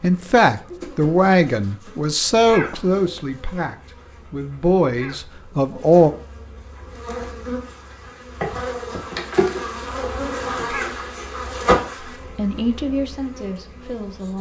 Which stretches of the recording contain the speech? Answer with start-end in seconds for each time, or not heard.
0.0-6.1, 12.2-14.3.